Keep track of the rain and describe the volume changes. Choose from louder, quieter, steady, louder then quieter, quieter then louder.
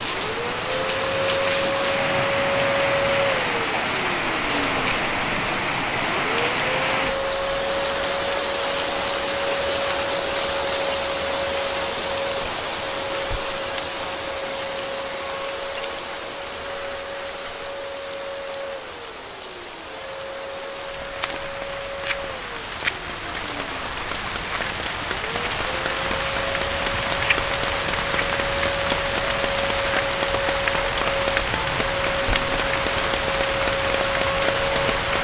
quieter then louder.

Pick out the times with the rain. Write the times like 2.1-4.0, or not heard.
0.0-35.1.